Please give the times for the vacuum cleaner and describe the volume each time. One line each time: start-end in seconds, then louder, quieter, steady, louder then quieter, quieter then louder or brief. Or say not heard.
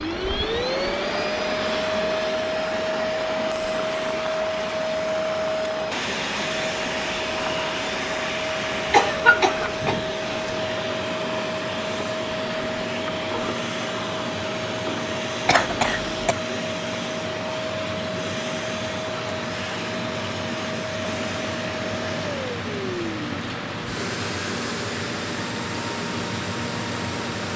0.0-27.5 quieter.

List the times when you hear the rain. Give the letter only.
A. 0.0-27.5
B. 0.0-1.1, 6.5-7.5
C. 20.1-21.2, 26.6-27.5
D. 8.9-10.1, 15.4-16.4
A.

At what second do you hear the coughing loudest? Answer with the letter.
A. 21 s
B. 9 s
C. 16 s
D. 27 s
B.